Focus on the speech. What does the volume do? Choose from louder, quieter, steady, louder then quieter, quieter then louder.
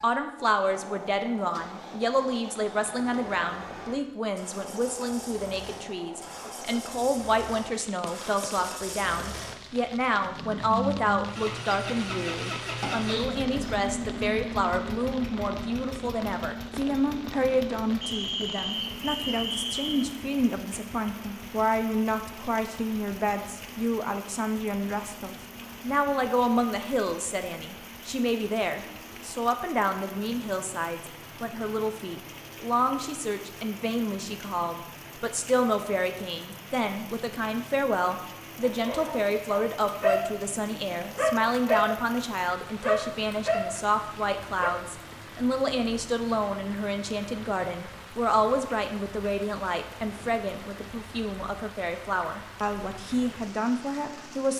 steady.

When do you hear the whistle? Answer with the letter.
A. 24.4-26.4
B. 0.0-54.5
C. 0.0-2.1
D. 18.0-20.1
D.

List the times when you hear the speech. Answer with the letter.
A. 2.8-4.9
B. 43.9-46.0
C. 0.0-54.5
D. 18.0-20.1
C.